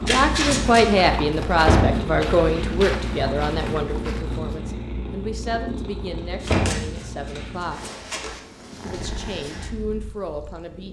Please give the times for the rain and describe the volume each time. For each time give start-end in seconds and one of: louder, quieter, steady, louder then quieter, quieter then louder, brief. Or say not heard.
not heard.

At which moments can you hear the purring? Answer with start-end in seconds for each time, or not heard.
0.0-10.8.